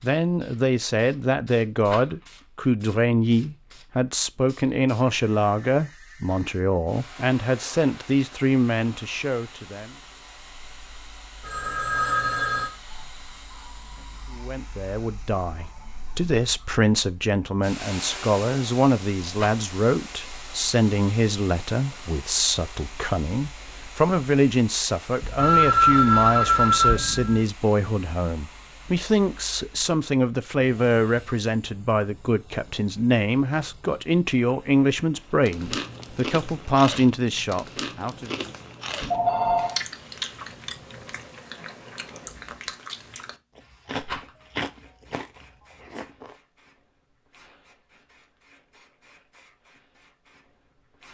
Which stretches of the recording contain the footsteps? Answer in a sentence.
The footsteps can't be heard in this clip.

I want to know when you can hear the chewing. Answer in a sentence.
The chewing can be heard from 35.4 to 46.4 s.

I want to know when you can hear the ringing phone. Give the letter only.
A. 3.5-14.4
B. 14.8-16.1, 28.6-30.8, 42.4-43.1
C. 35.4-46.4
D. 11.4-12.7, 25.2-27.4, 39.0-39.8
D.